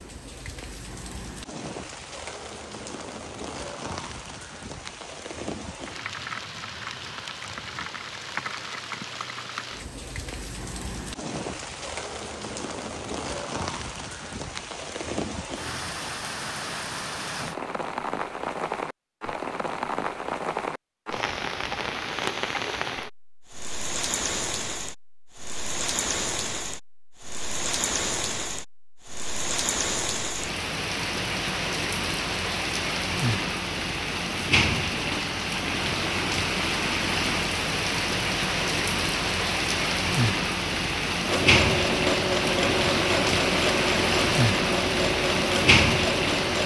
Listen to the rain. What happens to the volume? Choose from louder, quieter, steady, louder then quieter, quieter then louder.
louder.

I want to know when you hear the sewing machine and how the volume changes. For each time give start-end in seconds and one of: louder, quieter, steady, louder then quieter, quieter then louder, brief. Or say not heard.
41.2-46.6 steady.